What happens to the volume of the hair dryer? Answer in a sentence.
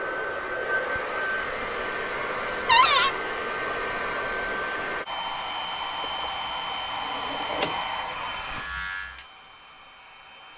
The volume of the hair dryer goes down.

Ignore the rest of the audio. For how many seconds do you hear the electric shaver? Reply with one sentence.
The electric shaver can be heard for 4 seconds in total.